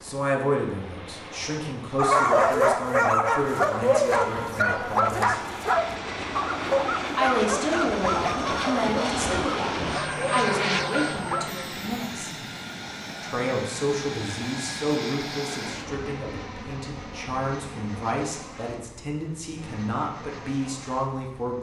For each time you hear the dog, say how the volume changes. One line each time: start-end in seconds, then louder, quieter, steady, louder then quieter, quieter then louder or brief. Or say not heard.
1.9-11.4 quieter.